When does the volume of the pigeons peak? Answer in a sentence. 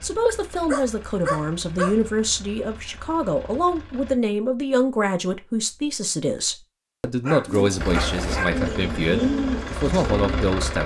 The loudest moment of the pigeons is at 9 seconds.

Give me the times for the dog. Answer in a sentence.
You can hear the dog from 0.7 to 1.9 s and from 7.2 to 8.7 s.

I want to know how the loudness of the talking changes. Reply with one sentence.
The loudness of the talking stays about the same.